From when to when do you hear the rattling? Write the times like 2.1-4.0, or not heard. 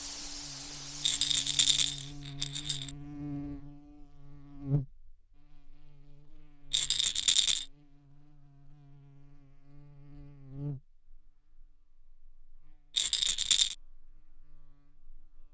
1.0-2.9, 6.7-7.7, 12.9-13.8.